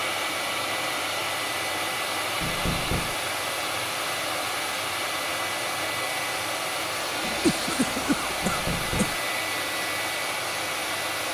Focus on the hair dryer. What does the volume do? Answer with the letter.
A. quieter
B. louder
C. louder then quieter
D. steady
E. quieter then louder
D.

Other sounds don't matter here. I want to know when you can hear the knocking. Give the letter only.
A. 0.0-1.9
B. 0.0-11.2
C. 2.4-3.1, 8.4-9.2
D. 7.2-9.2
C.